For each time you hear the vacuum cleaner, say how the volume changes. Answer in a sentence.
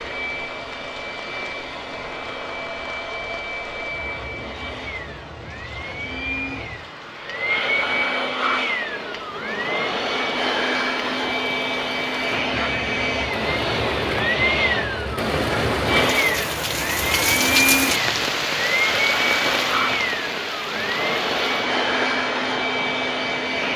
The vacuum cleaner can be heard from 0.0 to 23.7 s, getting louder.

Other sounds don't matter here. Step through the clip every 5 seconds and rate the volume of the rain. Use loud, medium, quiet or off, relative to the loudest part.
quiet, quiet, medium, loud, medium.